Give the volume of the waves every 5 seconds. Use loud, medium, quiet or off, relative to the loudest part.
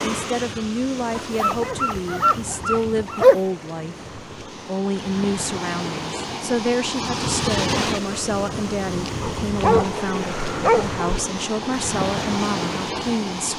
medium, loud, loud.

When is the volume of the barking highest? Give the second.
3 s.